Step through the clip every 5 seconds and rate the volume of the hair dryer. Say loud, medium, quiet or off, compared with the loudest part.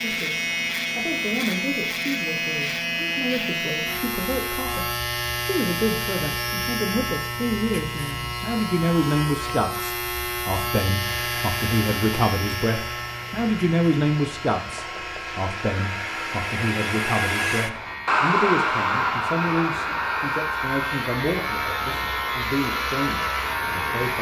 off, off, quiet, loud, medium.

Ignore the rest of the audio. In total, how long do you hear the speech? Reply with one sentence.
The speech can be heard for 24 seconds in total.